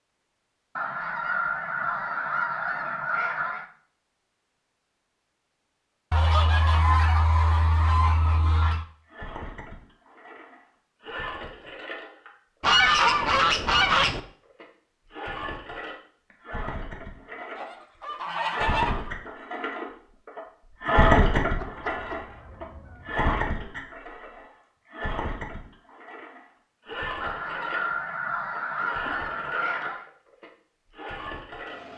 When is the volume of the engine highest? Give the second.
21 s.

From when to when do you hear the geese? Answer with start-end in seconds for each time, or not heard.
0.8-3.6, 6.1-8.8, 12.6-14.2, 17.6-19.1, 21.4-23.2, 27.2-30.1.